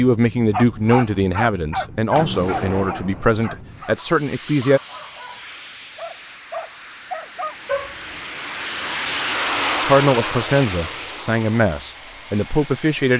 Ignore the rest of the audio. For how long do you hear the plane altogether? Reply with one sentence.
The plane can be heard for 13 seconds in total.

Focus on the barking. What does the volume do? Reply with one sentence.
The loudness of the barking goes down, then up.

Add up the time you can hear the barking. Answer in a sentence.
You can hear the barking for 8 seconds altogether.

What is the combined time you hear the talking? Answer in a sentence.
You can hear the talking for 8 seconds altogether.